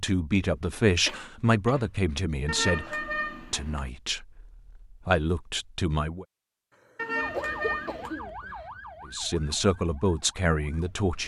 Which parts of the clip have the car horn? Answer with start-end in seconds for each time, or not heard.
2.5-3.9, 7.0-8.2.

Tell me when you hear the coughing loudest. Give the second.
8 s.